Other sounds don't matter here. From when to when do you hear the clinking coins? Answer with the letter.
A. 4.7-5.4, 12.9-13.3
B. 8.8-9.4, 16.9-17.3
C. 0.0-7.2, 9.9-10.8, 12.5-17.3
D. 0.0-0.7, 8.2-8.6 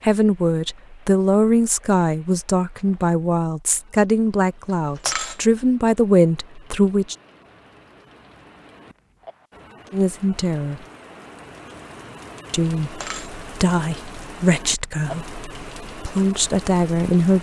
A.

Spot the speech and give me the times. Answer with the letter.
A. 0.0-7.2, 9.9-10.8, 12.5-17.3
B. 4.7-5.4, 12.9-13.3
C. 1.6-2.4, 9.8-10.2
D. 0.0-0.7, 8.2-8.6
A.